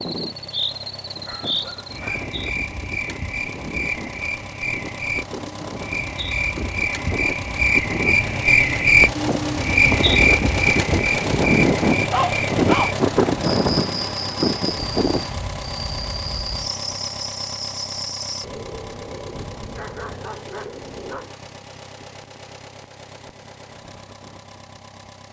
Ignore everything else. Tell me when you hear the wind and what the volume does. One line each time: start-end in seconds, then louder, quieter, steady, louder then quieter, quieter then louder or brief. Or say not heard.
0.0-15.3 louder.